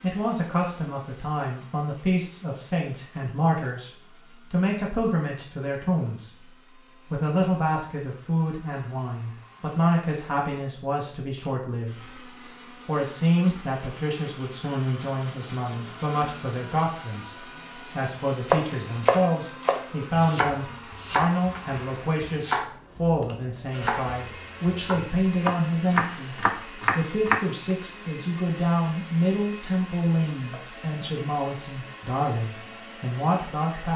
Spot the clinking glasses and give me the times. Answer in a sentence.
You can't hear the clinking glasses here.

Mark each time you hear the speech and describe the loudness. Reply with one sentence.
You can hear the speech from 0.0 to 12.2 s, at a steady volume; and from 12.8 to 33.9 s, at a steady volume.